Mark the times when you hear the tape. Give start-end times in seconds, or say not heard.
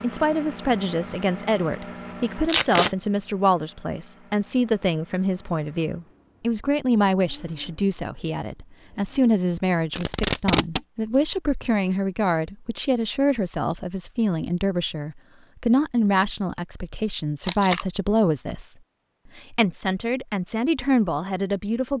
2.5-3.0, 9.9-10.8, 17.4-17.9.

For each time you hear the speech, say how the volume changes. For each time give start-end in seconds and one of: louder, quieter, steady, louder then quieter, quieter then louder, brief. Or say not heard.
0.0-18.8 steady
19.4-21.9 brief.